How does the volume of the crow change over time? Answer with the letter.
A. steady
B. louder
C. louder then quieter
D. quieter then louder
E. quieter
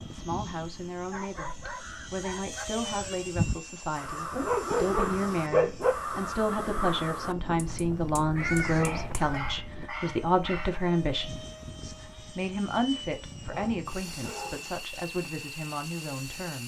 A.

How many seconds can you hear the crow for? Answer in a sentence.
The crow can be heard for 8 seconds in total.